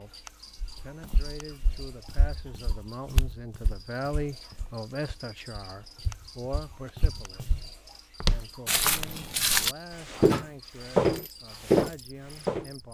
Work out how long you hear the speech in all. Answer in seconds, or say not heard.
13 s.